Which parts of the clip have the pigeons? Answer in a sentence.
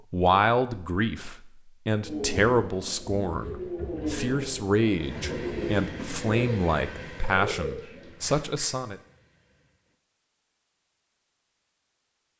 You can hear the pigeons from 1.9 to 8.7 s.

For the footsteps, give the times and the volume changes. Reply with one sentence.
The footsteps can't be heard in this clip.